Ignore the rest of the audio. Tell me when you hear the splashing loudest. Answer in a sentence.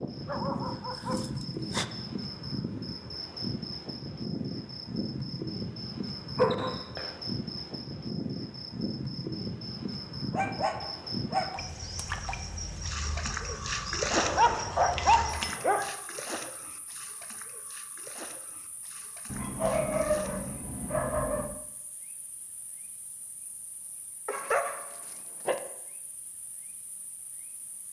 The volume of the splashing peaks at 14 seconds.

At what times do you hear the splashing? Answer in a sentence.
You can hear the splashing from 11.5 to 20.6 s.